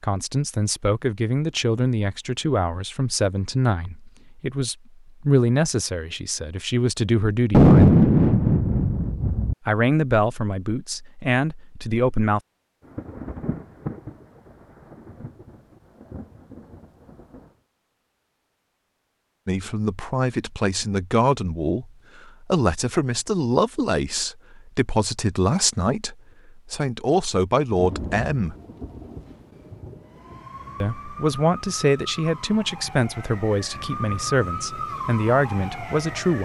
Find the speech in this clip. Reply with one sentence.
You can hear the speech from 0.0 to 8.0 s, from 9.7 to 12.4 s, from 19.4 to 28.6 s and from 30.8 to 36.4 s.